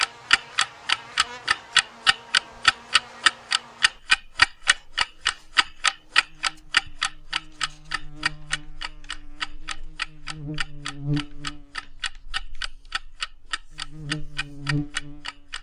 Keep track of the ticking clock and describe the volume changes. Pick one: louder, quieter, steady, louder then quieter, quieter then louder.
quieter.